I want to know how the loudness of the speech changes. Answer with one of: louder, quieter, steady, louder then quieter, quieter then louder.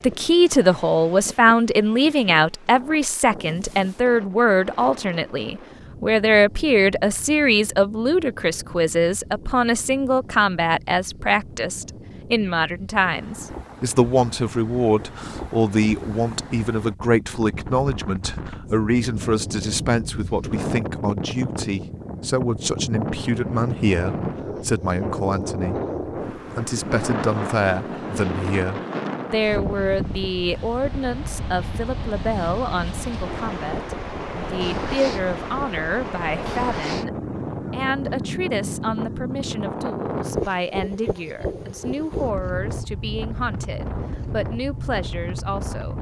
quieter.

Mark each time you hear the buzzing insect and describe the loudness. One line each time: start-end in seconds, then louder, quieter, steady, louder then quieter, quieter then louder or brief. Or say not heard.
not heard.